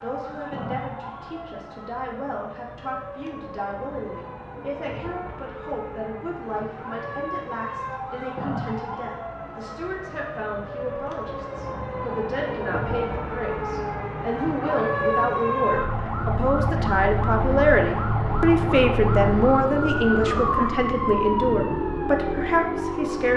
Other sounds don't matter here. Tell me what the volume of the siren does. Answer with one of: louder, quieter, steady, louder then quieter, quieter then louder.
louder.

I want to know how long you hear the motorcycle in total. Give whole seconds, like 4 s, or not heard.
7 s.